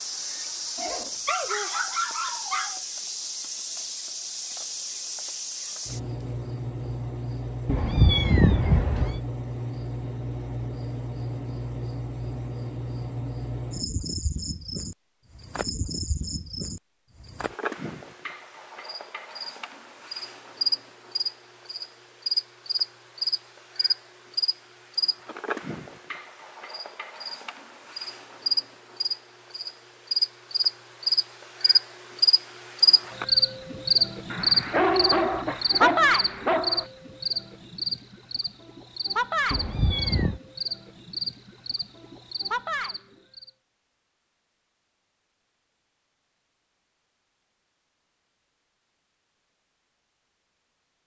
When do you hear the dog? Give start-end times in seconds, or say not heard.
0.8-2.8, 34.3-36.9.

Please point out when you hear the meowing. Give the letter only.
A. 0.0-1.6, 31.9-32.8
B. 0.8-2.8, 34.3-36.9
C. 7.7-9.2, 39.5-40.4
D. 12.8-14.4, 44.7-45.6
C.